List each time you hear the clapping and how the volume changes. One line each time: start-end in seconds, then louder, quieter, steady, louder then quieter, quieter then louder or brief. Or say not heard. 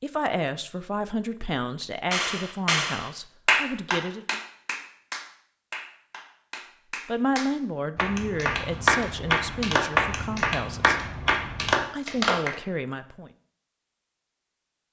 2.1-12.6 quieter then louder.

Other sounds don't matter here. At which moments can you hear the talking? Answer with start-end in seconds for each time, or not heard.
0.0-4.4, 7.0-11.1, 11.9-13.3.